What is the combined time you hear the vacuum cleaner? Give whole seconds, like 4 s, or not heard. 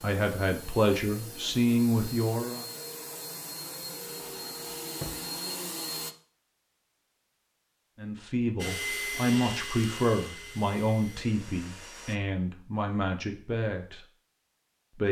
10 s.